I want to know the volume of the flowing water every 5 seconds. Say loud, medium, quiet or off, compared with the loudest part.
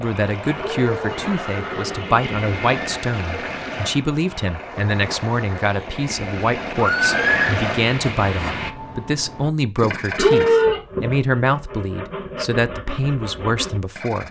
loud, loud, off.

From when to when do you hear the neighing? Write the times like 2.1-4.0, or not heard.
0.6-2.9, 6.8-7.6, 10.2-10.8.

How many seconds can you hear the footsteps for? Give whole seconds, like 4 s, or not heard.
not heard.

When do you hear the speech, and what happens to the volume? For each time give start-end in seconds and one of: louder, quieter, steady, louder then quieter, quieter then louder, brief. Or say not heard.
0.0-14.2 steady.